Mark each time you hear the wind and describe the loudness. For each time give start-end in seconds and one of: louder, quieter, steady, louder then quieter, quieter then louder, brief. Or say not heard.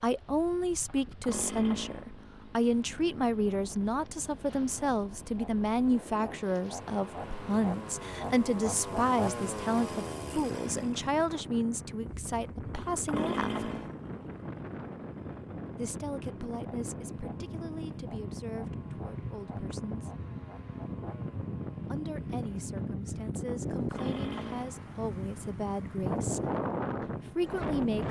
0.0-28.0 louder.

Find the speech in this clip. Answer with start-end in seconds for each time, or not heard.
0.0-13.8, 15.8-20.1, 21.9-28.0.